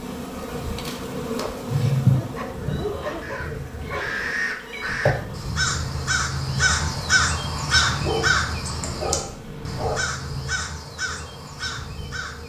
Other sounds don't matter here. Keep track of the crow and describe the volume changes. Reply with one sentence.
The loudness of the crow goes up, then down.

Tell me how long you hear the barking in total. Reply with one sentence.
You can hear the barking for 4 seconds altogether.